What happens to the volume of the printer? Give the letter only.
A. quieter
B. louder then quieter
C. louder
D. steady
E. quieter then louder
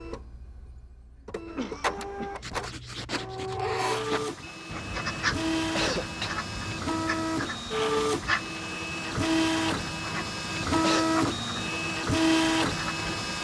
C.